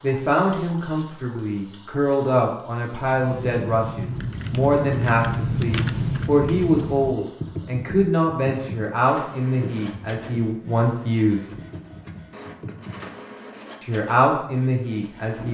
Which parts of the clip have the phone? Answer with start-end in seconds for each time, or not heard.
not heard.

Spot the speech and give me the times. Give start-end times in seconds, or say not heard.
0.0-11.4, 13.8-15.5.